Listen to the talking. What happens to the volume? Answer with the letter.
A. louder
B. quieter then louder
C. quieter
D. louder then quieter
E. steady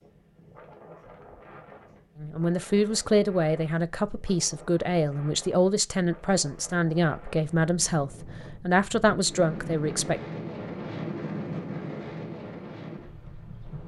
E.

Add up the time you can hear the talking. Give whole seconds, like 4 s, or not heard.
8 s.